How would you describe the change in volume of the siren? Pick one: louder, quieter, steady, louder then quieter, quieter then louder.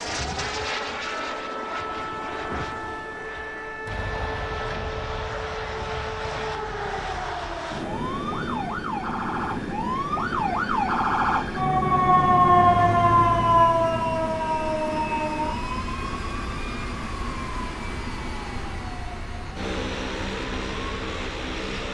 louder then quieter.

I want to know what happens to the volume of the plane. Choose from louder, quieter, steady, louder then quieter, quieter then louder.
steady.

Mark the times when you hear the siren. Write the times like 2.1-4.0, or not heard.
0.0-21.6.